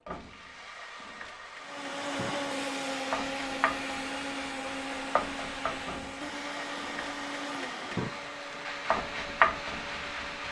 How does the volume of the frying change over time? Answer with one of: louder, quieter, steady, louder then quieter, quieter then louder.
louder.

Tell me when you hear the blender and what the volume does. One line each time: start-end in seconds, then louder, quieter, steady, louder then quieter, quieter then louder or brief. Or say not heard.
1.6-10.4 quieter.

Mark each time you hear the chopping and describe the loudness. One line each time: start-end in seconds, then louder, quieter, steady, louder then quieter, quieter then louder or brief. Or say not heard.
not heard.